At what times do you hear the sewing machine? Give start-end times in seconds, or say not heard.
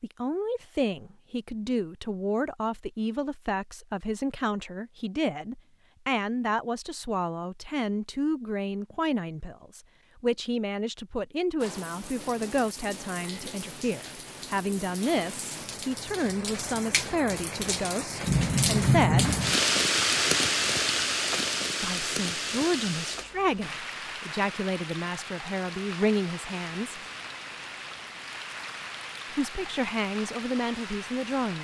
not heard.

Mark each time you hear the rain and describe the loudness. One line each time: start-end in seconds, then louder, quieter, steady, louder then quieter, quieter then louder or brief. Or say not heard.
11.6-31.5 louder then quieter.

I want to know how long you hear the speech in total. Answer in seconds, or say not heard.
27 s.